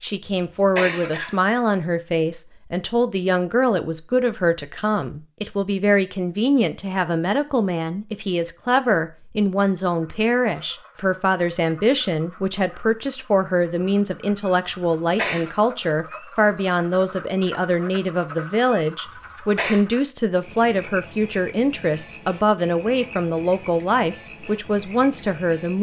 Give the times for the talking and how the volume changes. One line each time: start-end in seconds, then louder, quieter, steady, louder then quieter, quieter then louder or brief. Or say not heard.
0.0-25.7 steady.